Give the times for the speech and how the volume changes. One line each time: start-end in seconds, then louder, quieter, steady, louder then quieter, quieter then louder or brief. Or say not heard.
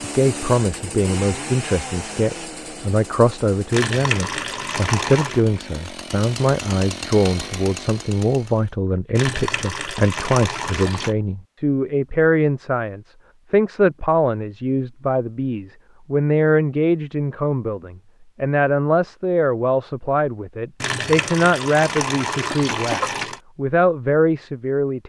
0.0-25.0 steady.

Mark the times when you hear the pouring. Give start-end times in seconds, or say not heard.
3.7-5.4, 9.2-11.2, 20.8-23.4.